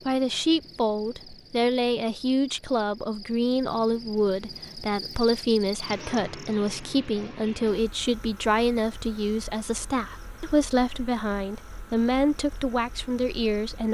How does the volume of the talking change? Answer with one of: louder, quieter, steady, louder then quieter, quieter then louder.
steady.